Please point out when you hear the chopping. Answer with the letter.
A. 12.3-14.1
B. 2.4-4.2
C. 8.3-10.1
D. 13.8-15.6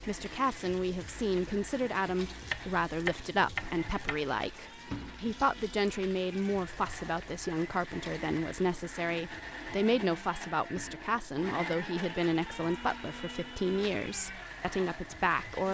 B.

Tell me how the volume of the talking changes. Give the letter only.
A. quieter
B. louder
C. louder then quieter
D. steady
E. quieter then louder
D.